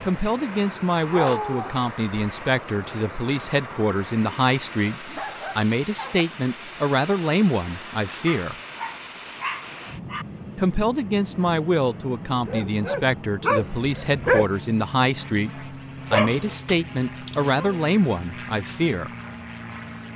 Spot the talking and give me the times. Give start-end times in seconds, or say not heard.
0.0-8.6, 10.6-19.1.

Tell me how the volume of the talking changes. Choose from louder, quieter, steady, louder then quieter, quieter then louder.
steady.